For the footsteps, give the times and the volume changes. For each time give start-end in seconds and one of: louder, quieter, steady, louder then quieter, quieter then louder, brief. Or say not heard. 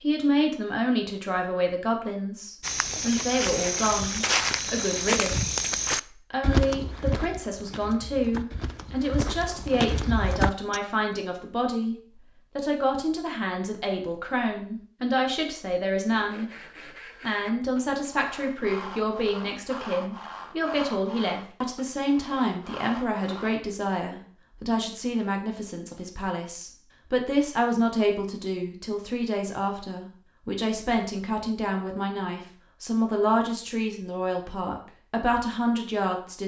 2.6-10.8 quieter then louder.